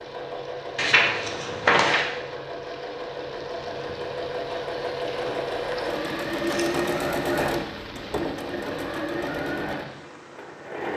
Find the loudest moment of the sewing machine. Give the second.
7 s.